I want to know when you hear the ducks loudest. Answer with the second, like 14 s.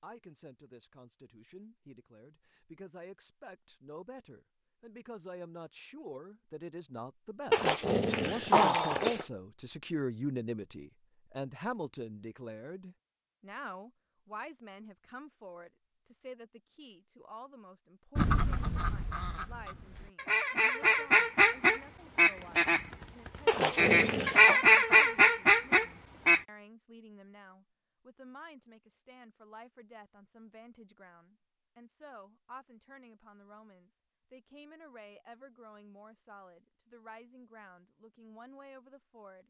25 s.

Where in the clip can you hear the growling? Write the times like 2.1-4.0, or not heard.
7.5-9.2, 23.4-24.6.